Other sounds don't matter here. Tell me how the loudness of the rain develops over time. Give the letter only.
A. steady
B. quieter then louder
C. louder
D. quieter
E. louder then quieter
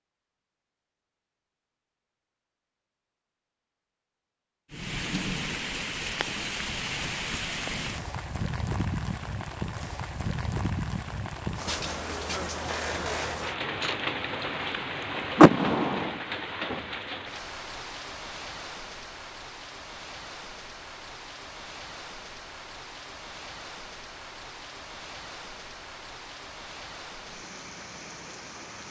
D.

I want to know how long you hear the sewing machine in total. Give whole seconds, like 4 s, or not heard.
not heard.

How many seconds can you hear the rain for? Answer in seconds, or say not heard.
24 s.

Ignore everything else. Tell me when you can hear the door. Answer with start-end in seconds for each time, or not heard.
15.3-16.1.